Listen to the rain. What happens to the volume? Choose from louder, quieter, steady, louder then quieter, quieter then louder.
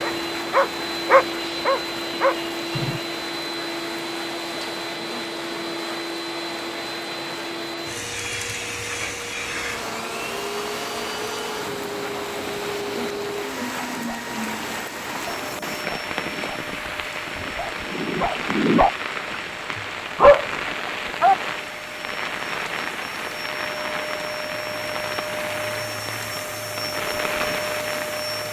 louder.